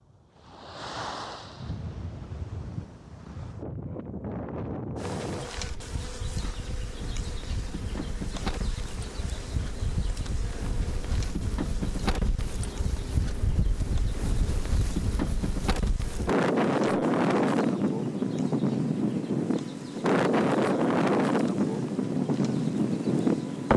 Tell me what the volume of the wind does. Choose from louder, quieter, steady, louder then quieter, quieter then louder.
louder.